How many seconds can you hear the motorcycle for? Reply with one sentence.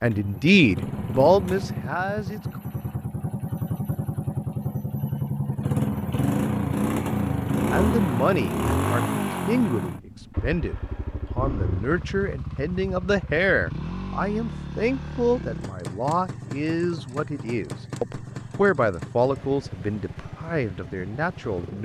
The motorcycle can be heard for 22 seconds in total.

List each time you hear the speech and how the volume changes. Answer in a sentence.
You can hear the speech briefly from 0.0 to 2.6 s; and from 7.7 to 21.7 s, at a steady volume.